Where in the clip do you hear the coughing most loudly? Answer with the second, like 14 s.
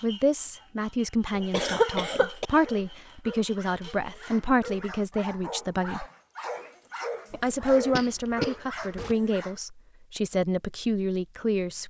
2 s.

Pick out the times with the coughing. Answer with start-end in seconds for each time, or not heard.
1.3-2.5, 7.3-9.2.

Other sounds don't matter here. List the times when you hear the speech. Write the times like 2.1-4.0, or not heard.
0.0-6.0, 7.4-11.8.